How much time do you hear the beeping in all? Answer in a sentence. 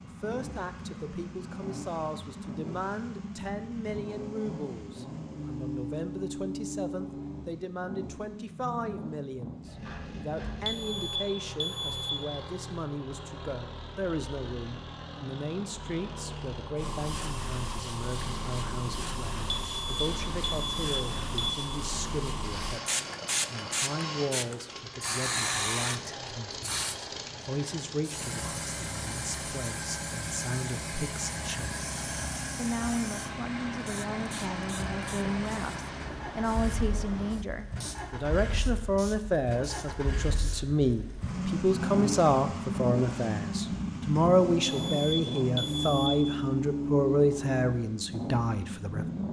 You can hear the beeping for 5 seconds altogether.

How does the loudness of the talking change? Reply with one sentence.
The loudness of the talking goes up.